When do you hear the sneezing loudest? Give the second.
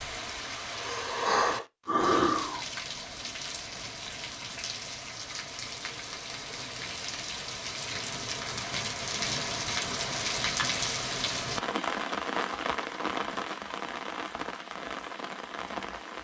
2 s.